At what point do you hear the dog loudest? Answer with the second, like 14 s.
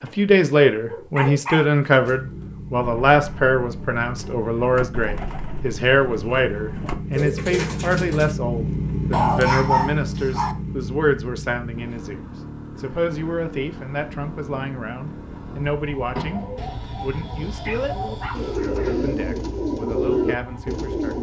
10 s.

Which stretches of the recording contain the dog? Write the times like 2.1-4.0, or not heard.
1.1-2.1, 9.1-10.6, 16.6-18.6.